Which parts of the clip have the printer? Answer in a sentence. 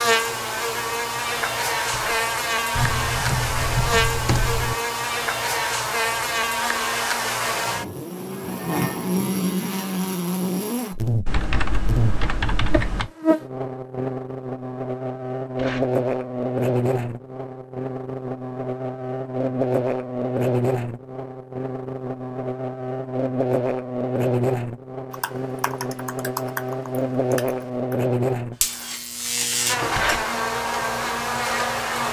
You can't hear the printer here.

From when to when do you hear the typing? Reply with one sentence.
You can hear the typing from 2.8 to 4.8 s, from 11.2 to 13.1 s and from 25.1 to 27.5 s.